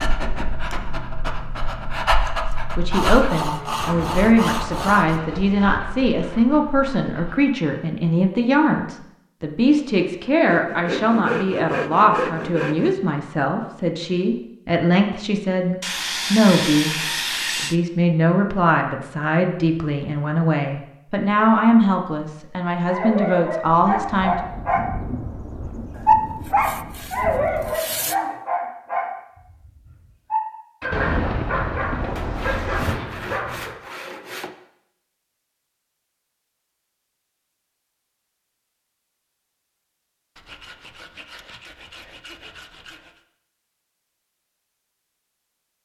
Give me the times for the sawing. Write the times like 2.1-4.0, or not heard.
2.9-5.2, 10.4-12.9, 15.8-17.8, 25.9-28.1, 32.1-34.5, 40.4-43.2.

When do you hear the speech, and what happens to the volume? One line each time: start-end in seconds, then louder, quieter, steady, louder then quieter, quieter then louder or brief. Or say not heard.
2.5-24.4 steady.